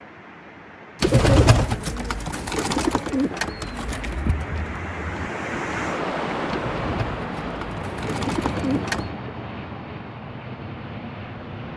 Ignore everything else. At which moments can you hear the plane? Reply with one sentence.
The plane can be heard from 6.7 to 11.7 s.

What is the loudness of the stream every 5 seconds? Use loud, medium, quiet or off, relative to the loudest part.
medium, loud, quiet.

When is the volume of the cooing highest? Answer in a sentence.
The volume of the cooing peaks at 1 second.